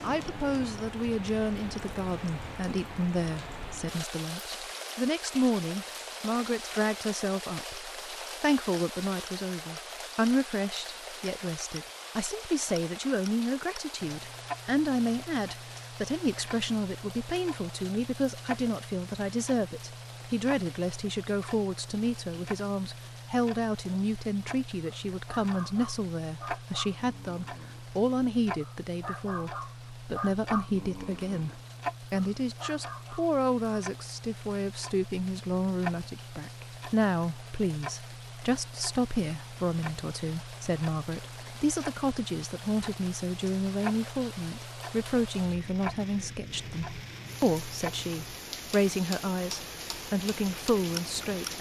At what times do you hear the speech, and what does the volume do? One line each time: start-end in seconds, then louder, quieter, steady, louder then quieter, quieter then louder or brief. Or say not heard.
0.0-51.5 steady.